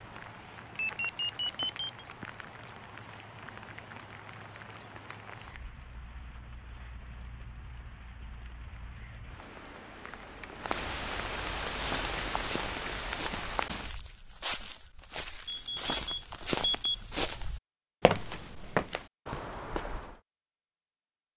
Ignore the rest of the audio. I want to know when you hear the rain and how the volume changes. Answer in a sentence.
You can hear the rain from 0.0 to 13.9 s, getting quieter then louder.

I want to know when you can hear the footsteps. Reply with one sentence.
The footsteps can be heard from 11.7 to 20.2 s.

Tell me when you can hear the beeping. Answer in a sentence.
The beeping can be heard from 0.8 to 2.0 s, from 9.4 to 10.8 s and from 15.4 to 16.9 s.